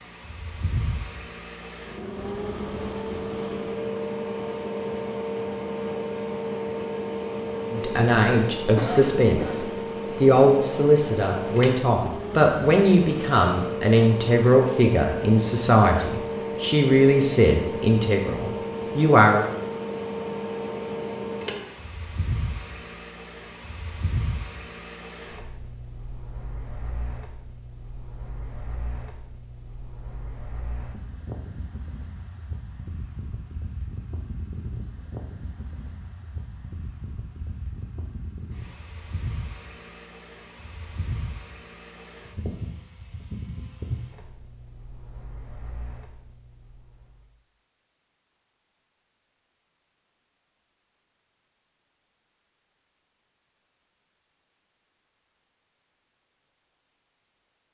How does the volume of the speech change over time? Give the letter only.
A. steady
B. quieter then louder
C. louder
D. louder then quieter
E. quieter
A.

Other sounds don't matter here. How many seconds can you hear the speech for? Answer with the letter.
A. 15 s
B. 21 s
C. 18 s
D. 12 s
D.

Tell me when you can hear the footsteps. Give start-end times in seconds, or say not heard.
not heard.